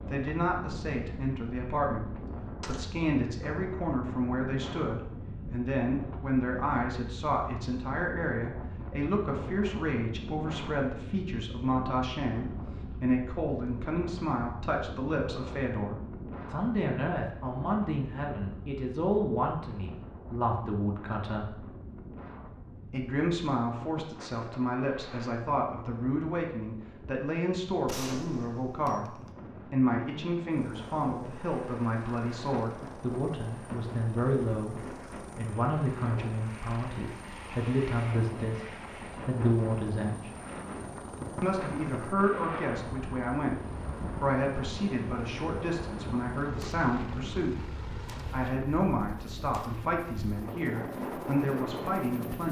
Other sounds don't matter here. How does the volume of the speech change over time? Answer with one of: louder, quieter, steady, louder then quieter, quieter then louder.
steady.